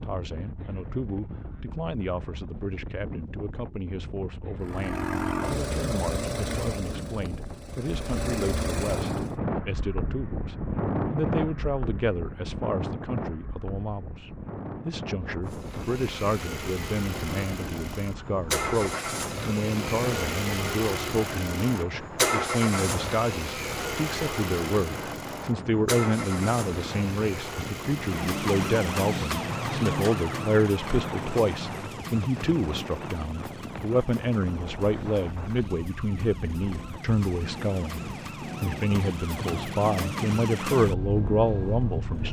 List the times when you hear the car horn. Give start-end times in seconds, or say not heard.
not heard.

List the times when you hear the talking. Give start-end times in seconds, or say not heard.
0.0-42.2.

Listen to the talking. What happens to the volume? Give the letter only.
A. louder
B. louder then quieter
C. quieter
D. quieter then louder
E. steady
A.